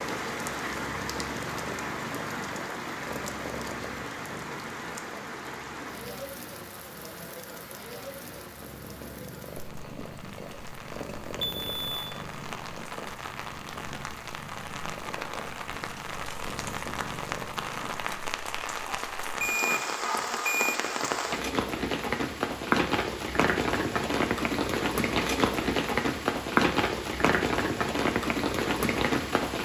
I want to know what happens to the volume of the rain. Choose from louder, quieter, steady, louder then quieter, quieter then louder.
quieter then louder.